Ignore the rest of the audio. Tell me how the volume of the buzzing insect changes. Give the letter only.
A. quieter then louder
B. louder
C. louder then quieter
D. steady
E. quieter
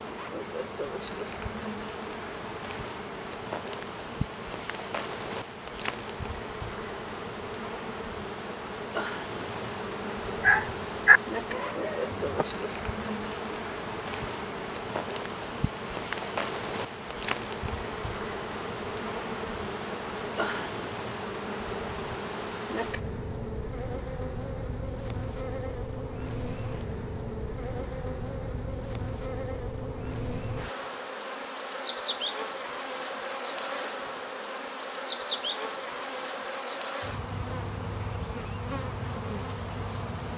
D.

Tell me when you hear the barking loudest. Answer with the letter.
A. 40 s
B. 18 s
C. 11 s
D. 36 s
C.